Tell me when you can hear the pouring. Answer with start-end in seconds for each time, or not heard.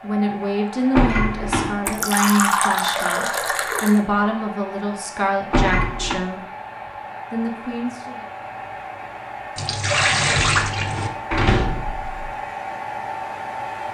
1.9-4.0, 9.6-11.1.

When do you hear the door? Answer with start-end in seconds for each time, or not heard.
0.9-1.9, 5.5-6.2, 10.4-12.2.